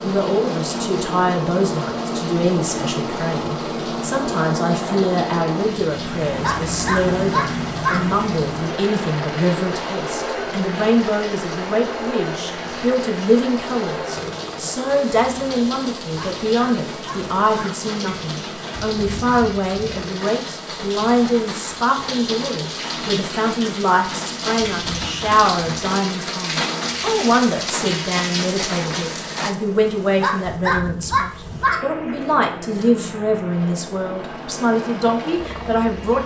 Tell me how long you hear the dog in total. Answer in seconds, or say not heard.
5 s.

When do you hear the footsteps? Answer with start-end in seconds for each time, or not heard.
not heard.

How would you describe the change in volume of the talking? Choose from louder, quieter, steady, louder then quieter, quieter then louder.
steady.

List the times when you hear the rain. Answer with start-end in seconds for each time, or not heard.
0.0-29.6.